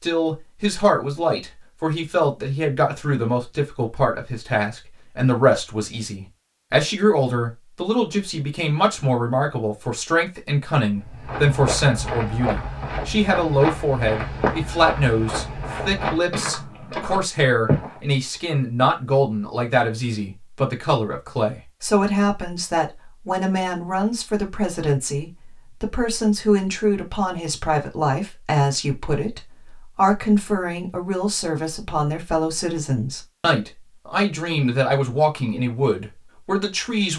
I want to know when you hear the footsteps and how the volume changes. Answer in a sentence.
You can hear the footsteps from 11.1 to 18.0 s, at a steady volume.